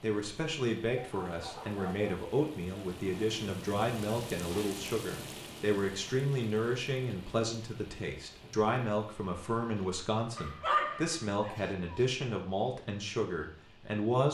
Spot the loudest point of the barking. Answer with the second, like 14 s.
11 s.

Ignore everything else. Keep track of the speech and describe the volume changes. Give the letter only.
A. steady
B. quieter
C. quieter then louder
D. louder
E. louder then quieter
A.